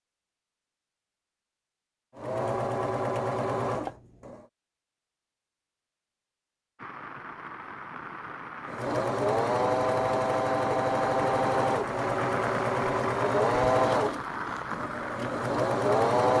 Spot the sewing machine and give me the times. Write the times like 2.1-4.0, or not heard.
2.1-4.5, 8.7-16.3.